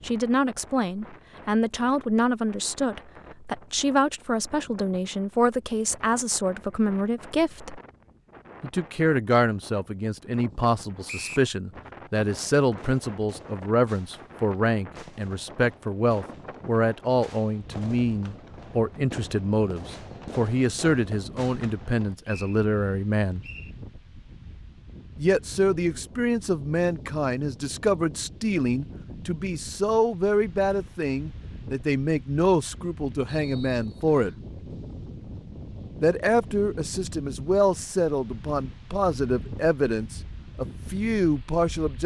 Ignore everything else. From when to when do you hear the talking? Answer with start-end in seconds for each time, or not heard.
0.0-7.8, 8.6-23.4, 25.1-34.4, 36.0-42.0.